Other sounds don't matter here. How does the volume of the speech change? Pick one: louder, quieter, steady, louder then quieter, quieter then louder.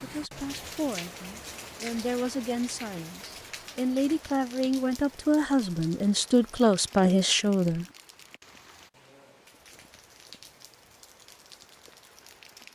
louder.